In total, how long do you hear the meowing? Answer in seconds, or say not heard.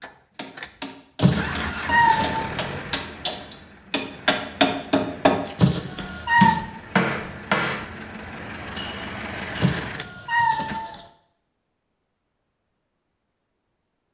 4 s.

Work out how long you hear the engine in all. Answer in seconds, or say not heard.
11 s.